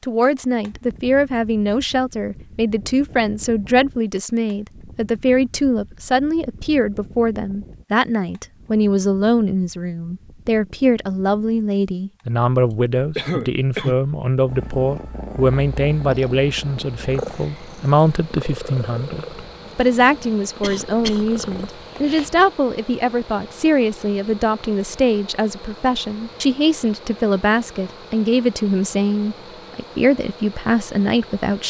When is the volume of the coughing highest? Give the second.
13 s.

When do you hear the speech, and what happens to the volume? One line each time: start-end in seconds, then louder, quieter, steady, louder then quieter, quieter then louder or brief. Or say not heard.
0.0-31.6 steady.